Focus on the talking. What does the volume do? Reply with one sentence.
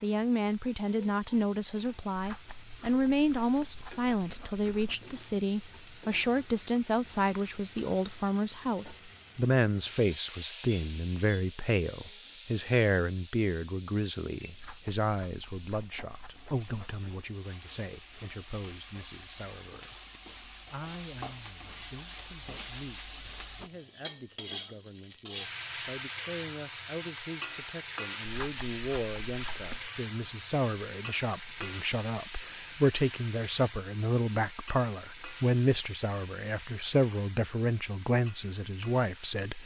The loudness of the talking goes down, then up.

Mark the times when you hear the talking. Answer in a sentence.
You can hear the talking from 0.0 to 39.6 s.